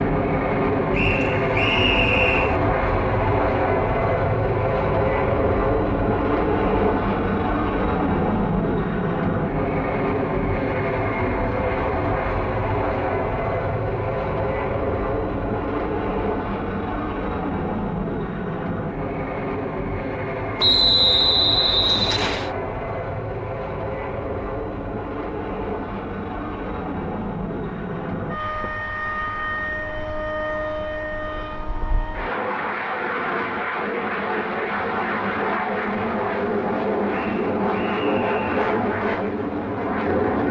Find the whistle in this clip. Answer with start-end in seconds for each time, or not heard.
0.9-2.6, 20.6-22.5, 37.1-38.5.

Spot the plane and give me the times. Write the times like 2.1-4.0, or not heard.
0.0-40.4.